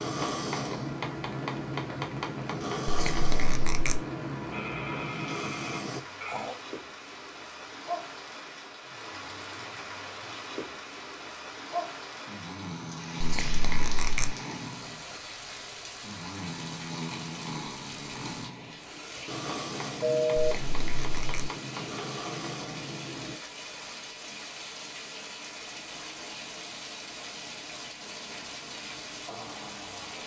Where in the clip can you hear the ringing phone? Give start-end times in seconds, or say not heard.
4.5-6.5, 20.0-20.6.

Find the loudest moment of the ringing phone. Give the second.
20 s.